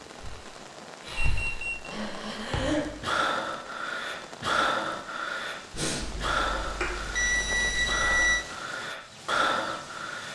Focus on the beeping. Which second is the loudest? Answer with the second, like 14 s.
8 s.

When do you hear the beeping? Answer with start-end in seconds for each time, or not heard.
1.1-1.9, 6.0-8.4.